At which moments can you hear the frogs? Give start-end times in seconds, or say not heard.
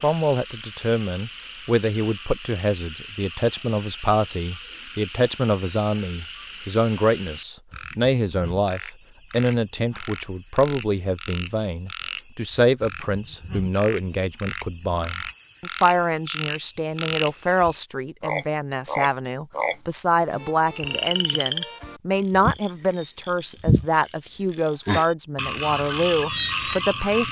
0.0-27.2.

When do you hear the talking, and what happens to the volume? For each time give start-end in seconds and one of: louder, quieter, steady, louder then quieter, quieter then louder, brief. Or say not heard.
0.0-27.2 steady.